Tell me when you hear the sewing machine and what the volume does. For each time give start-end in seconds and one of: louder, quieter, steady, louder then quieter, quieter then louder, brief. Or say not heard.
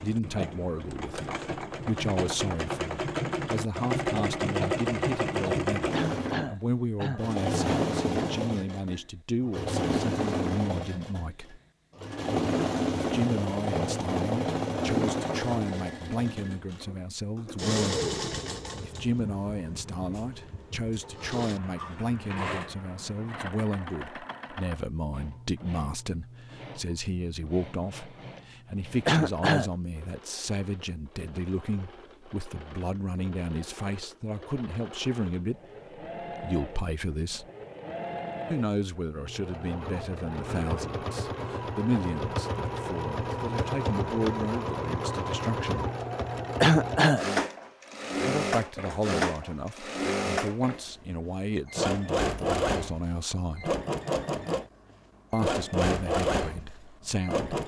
0.0-57.6 quieter then louder.